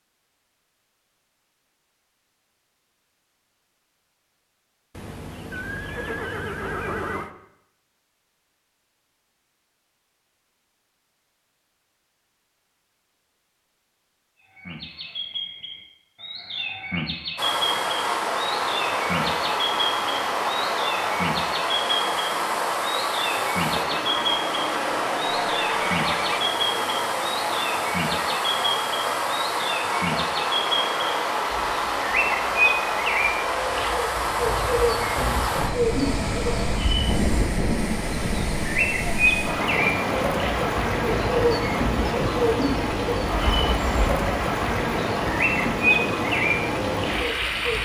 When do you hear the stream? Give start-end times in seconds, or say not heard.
17.4-47.8.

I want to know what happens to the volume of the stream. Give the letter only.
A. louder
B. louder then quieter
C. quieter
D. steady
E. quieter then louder
D.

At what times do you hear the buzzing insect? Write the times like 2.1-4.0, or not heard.
not heard.